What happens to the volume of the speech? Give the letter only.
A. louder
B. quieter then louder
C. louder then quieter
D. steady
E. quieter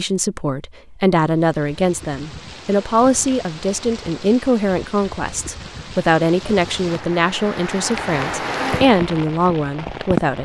D.